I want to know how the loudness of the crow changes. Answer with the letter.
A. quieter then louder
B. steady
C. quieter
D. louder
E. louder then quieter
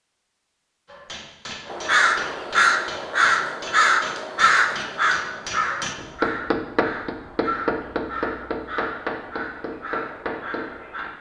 C.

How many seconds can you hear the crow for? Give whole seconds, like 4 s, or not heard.
9 s.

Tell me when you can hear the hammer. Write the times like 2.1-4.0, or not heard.
0.8-11.1.